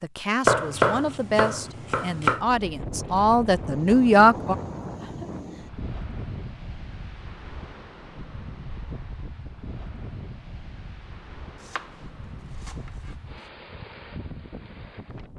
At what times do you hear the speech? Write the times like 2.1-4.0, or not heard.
0.0-4.5.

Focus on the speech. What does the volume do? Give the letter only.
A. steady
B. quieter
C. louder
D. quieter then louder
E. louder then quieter
C.